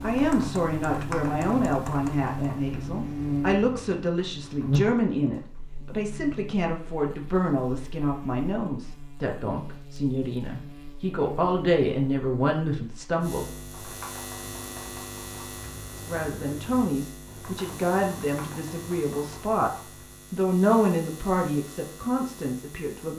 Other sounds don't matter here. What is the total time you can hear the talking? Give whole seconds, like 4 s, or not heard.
20 s.